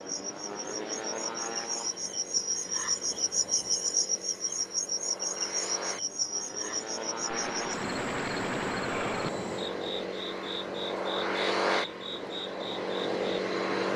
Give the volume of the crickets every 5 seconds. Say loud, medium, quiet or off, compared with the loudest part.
loud, loud, medium.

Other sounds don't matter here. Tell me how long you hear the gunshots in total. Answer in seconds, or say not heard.
2 s.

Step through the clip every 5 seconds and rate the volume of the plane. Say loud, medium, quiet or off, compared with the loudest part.
medium, medium, loud.